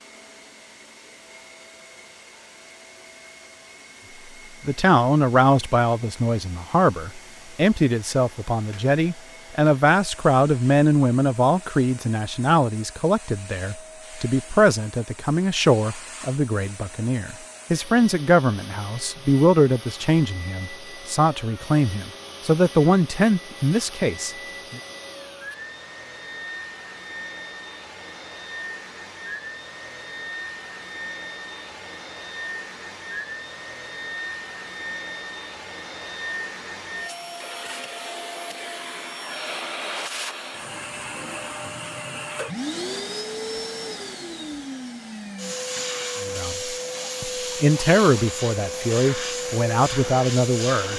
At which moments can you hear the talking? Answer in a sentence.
The talking can be heard from 4.7 to 24.8 s and from 46.2 to 50.9 s.